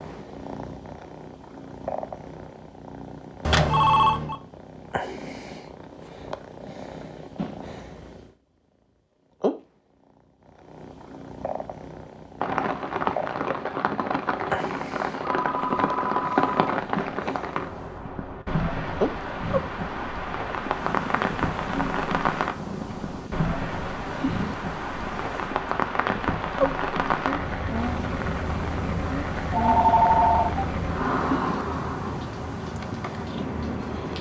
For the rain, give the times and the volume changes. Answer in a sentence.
The rain can be heard from 12.4 to 34.1 s, at a steady volume.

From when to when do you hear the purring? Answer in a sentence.
You can hear the purring from 0.0 to 8.3 s, from 9.4 to 18.1 s and from 18.9 to 34.1 s.